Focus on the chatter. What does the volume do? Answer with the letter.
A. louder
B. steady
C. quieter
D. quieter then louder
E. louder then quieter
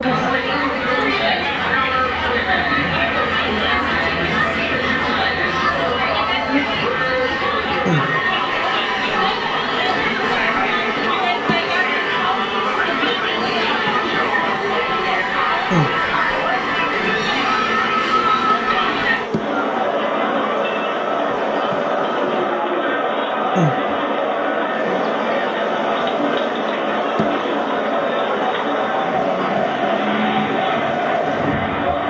B.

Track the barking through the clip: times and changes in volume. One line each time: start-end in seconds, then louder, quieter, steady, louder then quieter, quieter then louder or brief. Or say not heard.
not heard.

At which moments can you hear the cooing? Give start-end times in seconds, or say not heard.
not heard.